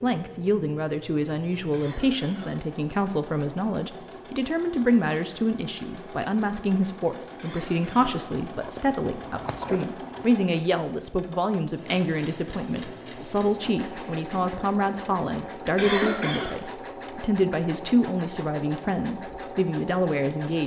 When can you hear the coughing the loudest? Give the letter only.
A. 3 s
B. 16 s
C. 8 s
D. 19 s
B.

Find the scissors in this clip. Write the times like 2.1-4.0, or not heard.
8.6-10.2.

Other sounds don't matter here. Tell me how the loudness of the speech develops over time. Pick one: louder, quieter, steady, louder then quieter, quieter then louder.
steady.